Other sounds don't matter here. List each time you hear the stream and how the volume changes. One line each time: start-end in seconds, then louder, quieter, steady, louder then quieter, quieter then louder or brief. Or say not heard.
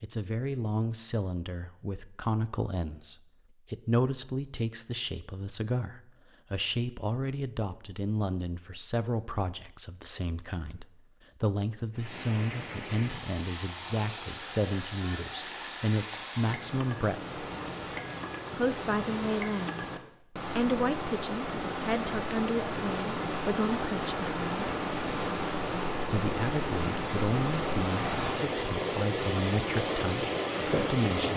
11.9-31.3 louder.